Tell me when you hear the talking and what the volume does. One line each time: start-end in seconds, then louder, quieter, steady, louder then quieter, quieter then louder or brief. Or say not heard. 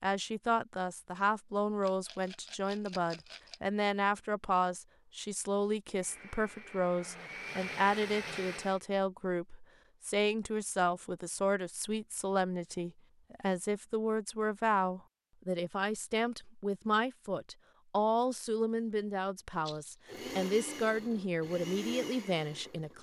0.0-22.9 steady.